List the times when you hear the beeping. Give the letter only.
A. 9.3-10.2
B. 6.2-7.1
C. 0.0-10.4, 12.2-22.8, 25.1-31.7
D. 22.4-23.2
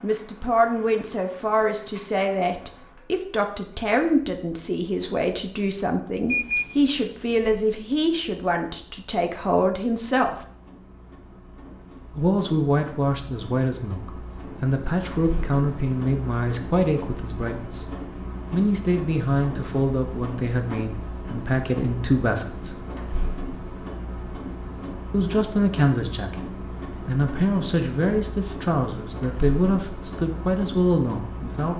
B.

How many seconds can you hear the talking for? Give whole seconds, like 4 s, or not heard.
28 s.